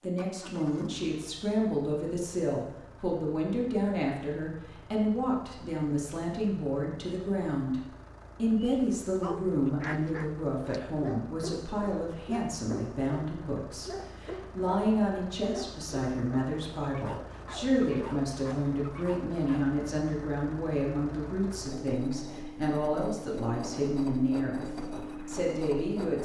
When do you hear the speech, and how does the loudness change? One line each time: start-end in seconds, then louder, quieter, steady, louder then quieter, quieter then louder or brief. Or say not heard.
0.0-26.2 steady.